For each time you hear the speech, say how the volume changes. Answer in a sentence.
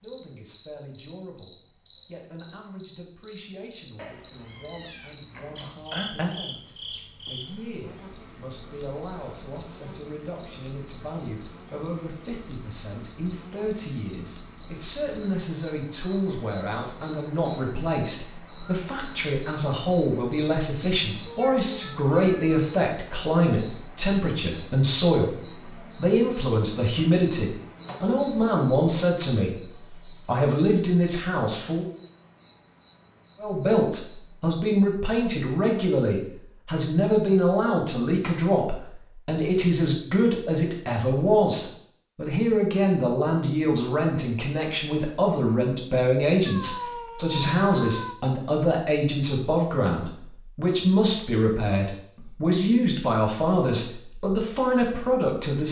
You can hear the speech from 0.0 to 31.9 s, getting louder; and from 33.4 to 55.6 s, at a steady volume.